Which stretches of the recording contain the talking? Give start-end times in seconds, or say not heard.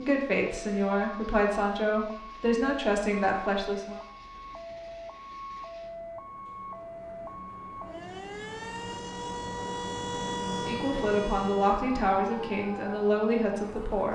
0.0-4.0, 10.5-14.1.